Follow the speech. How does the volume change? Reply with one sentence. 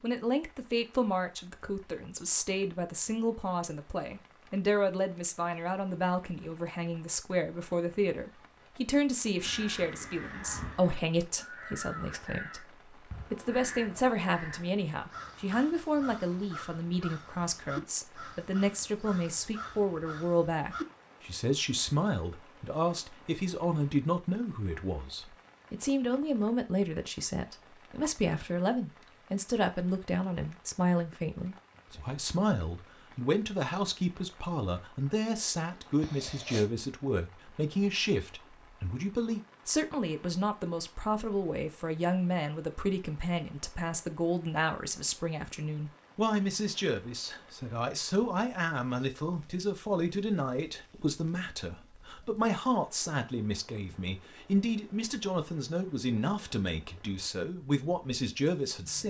The loudness of the speech stays about the same.